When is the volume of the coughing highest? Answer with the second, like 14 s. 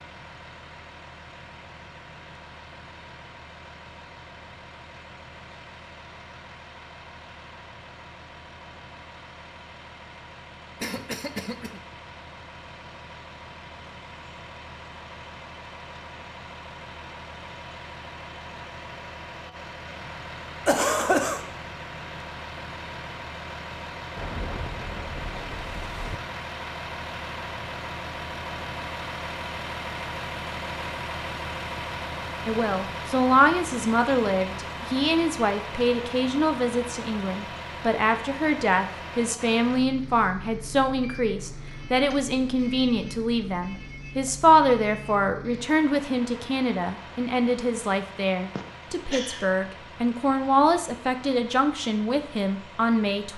21 s.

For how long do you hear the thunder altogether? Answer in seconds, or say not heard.
2 s.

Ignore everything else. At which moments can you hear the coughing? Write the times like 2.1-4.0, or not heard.
10.8-11.8, 20.6-21.4, 48.5-49.5.